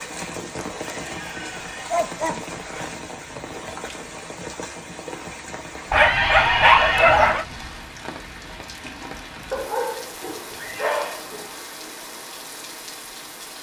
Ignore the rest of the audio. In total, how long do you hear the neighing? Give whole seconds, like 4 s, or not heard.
3 s.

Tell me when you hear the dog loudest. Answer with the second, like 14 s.
7 s.